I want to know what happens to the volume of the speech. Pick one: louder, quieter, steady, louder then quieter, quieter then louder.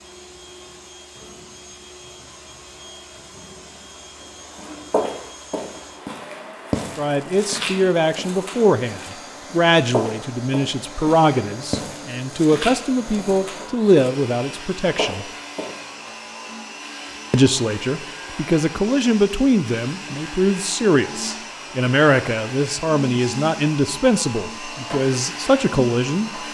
steady.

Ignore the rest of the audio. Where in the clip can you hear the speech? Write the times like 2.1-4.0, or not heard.
7.0-15.3, 17.3-26.4.